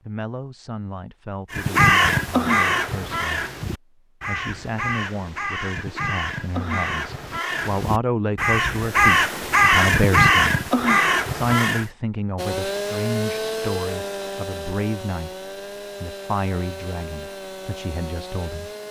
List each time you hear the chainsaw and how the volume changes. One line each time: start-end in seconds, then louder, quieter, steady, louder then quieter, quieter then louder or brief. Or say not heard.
12.3-18.8 quieter.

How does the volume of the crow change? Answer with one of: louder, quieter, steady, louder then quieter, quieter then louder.
quieter then louder.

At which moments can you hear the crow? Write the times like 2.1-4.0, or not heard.
1.5-11.8.